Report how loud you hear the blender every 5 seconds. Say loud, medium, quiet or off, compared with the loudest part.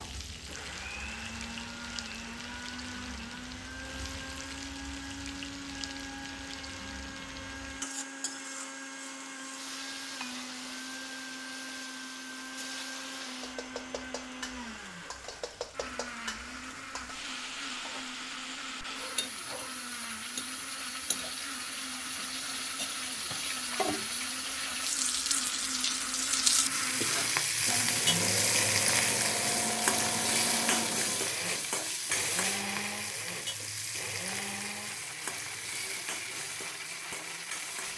medium, medium, medium, medium, medium, loud, loud, medium.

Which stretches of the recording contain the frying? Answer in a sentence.
You can hear the frying from 0.0 to 37.9 s.